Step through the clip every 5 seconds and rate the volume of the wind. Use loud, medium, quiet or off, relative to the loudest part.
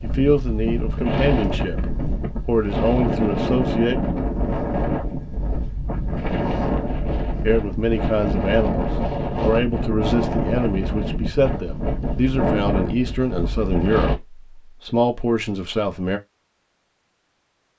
loud, loud, loud, off.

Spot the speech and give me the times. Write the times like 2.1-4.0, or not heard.
0.0-4.0, 7.4-16.2.